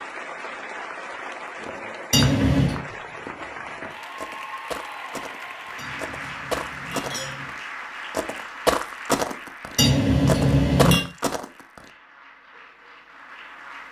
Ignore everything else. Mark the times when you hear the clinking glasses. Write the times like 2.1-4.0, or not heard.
2.1-2.8, 5.8-7.5, 9.8-11.1.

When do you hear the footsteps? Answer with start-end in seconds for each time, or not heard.
1.6-11.8.